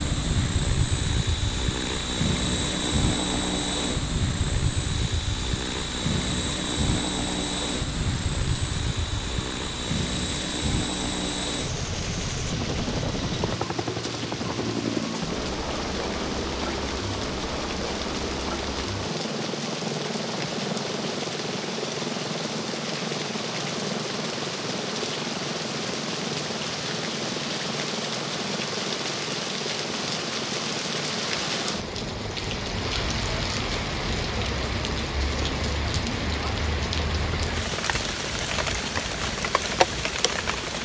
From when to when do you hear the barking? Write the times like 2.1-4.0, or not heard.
not heard.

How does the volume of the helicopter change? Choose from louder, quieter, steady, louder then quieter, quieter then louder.
quieter.